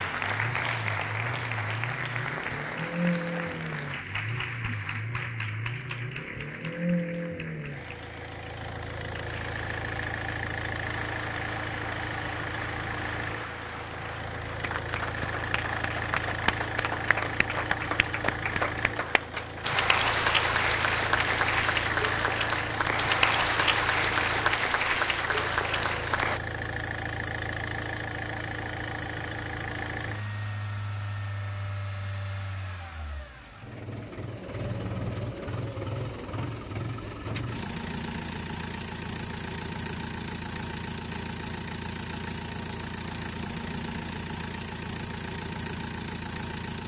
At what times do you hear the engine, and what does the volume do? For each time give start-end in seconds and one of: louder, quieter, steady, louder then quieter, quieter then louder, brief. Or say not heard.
0.0-46.8 steady.